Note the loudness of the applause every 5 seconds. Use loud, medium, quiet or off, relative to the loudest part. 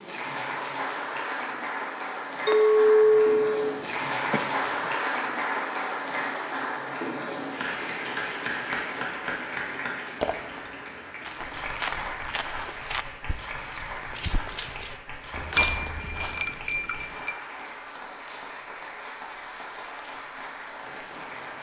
loud, loud, medium, medium, medium.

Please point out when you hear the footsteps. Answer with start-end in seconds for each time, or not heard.
11.2-16.6.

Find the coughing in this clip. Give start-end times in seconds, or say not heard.
3.8-4.9.